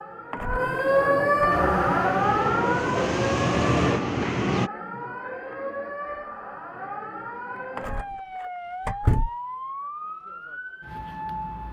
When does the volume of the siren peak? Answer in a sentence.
The volume of the siren peaks at 1 second.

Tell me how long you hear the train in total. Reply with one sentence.
The train can be heard for 3 seconds in total.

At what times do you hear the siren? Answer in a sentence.
You can hear the siren from 0.0 to 11.6 s.